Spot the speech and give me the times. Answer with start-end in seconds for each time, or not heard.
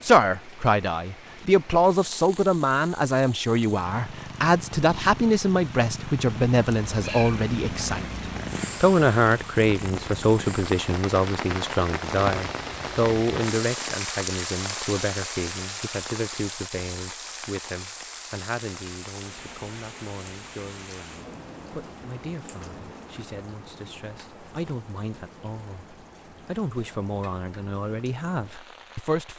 0.0-29.3.